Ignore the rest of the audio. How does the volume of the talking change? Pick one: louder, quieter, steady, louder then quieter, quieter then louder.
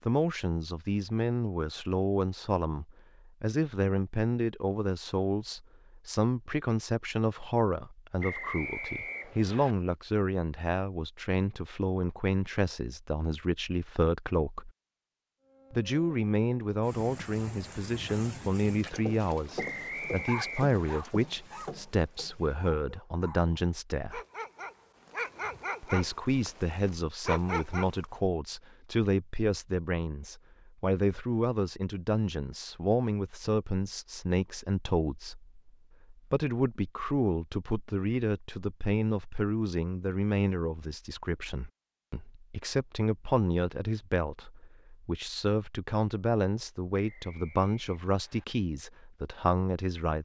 steady.